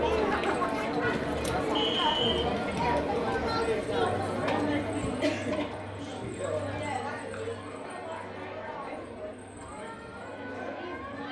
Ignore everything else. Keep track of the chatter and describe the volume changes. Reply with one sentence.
The volume of the chatter goes down.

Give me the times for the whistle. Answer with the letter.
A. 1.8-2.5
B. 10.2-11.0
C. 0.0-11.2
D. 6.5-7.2
A.